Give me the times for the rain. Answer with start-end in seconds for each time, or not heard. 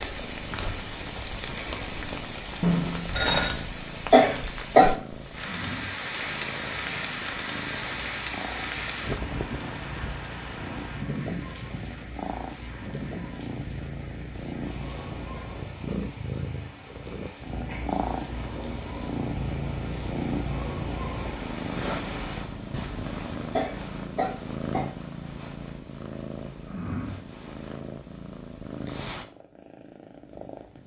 0.0-22.4.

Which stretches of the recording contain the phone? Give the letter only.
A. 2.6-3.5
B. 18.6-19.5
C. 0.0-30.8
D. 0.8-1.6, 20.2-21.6
A.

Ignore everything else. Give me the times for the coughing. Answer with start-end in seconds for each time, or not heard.
4.1-5.0, 23.5-24.9.